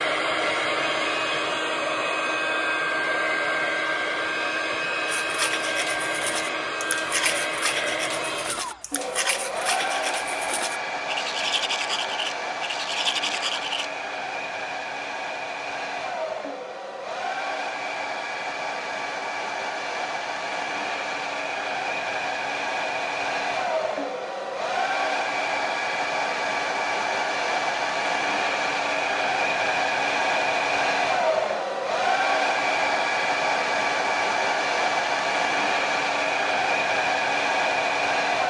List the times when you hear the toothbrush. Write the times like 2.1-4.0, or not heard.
5.1-13.8.